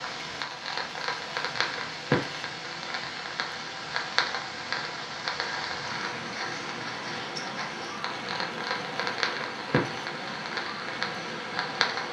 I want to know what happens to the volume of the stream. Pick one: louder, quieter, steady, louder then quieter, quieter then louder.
steady.